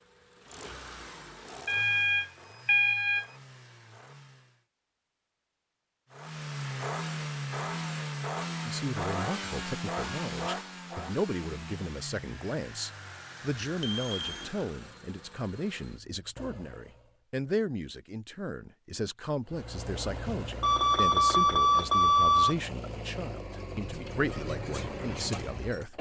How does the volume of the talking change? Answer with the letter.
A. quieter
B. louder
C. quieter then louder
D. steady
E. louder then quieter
D.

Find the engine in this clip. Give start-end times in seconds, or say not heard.
0.0-4.7, 6.1-17.1, 19.4-25.9.